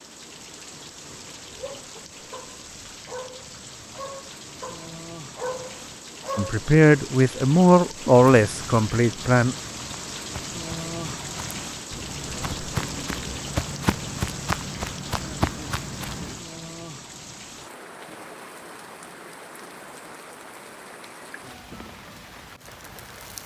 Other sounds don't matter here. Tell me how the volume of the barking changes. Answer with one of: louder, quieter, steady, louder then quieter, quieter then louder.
louder.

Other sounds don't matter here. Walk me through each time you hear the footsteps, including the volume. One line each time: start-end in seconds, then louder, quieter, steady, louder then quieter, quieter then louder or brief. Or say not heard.
8.3-16.4 louder.